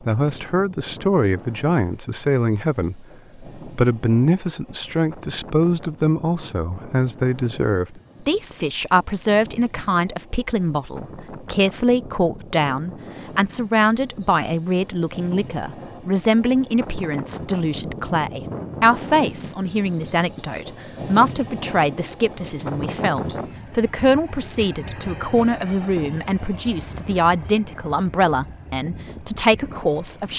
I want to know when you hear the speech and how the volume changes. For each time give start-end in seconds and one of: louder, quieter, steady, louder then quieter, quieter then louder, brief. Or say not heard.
0.1-30.3 steady.